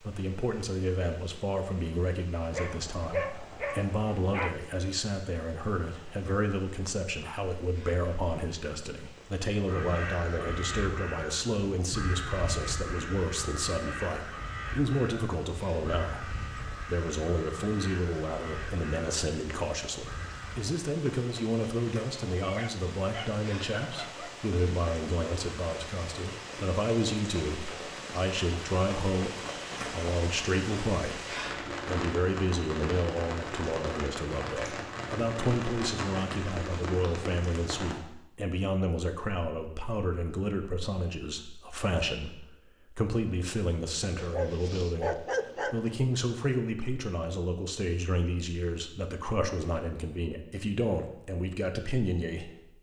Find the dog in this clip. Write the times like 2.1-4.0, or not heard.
2.5-4.5, 22.4-24.3, 44.1-46.1.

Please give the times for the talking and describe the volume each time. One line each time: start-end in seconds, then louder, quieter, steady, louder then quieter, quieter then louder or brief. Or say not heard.
0.0-52.7 steady.